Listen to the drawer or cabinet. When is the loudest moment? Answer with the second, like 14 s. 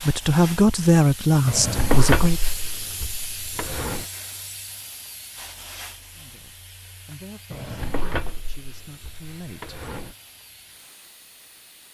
2 s.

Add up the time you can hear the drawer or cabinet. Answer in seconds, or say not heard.
5 s.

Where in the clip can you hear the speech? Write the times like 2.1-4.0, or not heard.
0.0-2.4, 6.2-9.8.